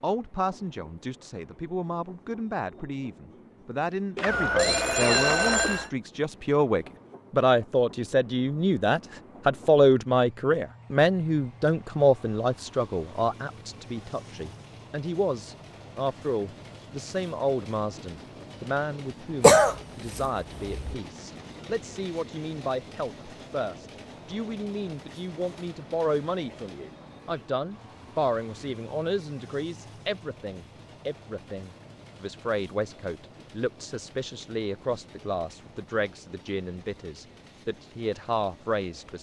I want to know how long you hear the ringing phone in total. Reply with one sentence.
You can hear the ringing phone for 2 seconds altogether.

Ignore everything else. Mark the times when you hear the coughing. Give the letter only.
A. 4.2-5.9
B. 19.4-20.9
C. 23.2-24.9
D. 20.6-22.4
B.